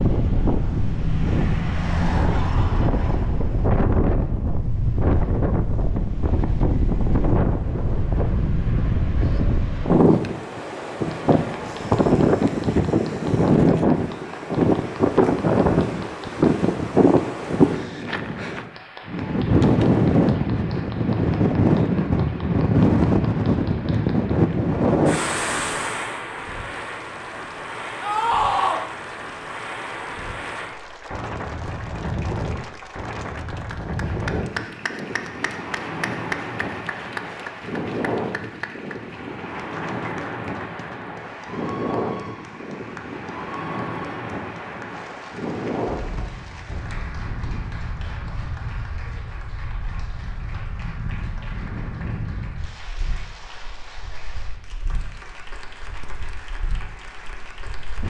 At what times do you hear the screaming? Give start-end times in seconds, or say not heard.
28.0-28.9.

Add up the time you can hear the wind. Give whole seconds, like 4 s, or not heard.
58 s.